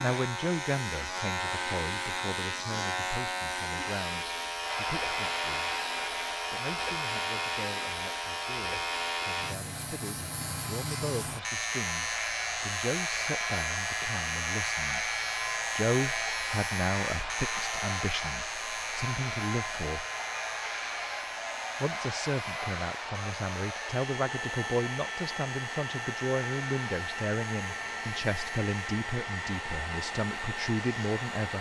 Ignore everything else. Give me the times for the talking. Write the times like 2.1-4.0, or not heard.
0.0-15.1, 15.8-20.1, 21.8-31.5.